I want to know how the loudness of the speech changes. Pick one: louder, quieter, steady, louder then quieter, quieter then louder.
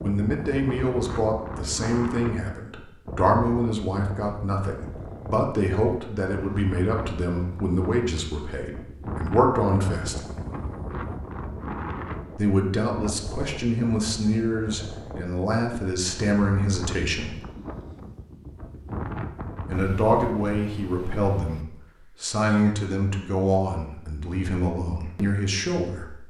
steady.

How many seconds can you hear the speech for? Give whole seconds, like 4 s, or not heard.
22 s.